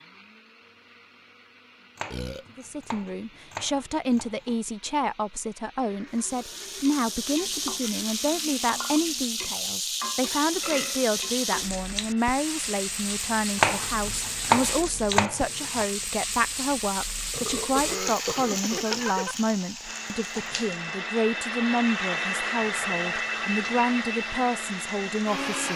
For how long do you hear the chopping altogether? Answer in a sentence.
The chopping can be heard for 5 seconds in total.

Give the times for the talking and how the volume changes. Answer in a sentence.
You can hear the talking from 2.5 to 25.7 s, at a steady volume.